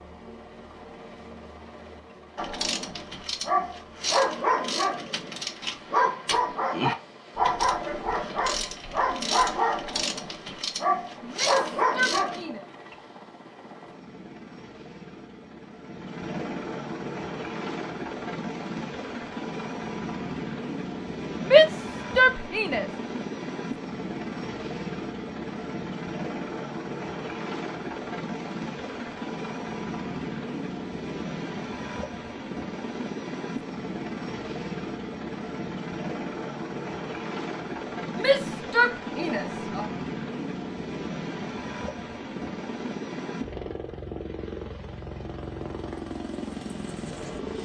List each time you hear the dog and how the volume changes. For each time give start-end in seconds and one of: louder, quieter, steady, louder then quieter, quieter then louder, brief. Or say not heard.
2.4-12.4 steady.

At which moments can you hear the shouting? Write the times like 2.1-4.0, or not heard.
11.2-12.6, 21.4-22.9, 38.1-39.9.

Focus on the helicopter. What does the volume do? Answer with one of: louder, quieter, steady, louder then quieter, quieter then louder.
louder.